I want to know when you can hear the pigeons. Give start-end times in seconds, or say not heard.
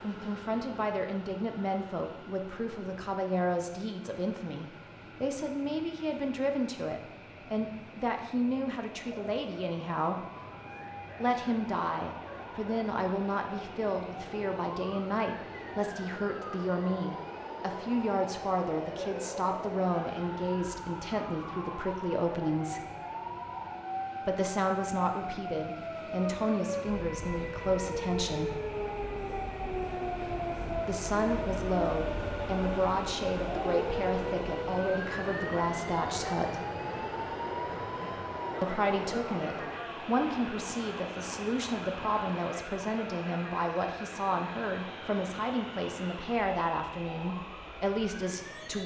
not heard.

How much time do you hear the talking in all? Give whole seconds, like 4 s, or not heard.
42 s.